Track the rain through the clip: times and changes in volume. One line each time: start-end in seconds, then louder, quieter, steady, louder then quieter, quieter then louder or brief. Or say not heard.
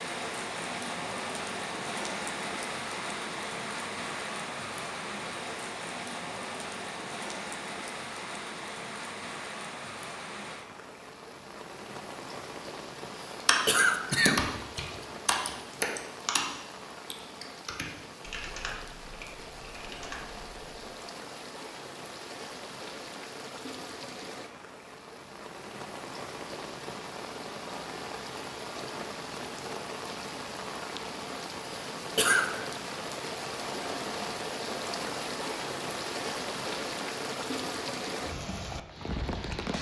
0.0-39.7 quieter then louder.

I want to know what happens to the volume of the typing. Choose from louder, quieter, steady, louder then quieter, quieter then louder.
quieter.